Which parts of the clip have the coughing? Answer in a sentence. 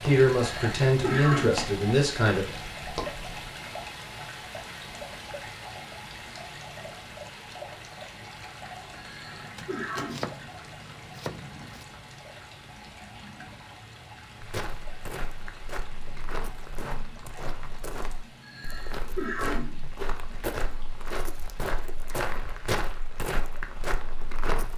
The coughing can be heard from 0.3 to 1.6 s, from 8.9 to 10.3 s and from 18.4 to 19.9 s.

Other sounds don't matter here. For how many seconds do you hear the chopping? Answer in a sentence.
The chopping can be heard for 2 seconds in total.